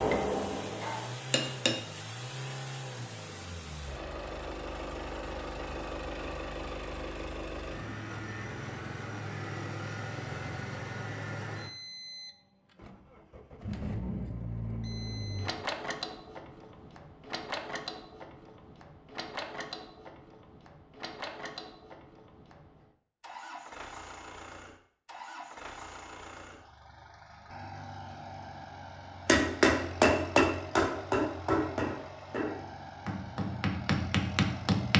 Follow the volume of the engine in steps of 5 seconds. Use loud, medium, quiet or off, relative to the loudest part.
loud, loud, loud, loud, medium, medium, medium.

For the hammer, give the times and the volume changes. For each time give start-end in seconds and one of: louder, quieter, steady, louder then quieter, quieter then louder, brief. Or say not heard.
0.0-1.8 brief
29.2-34.9 quieter then louder.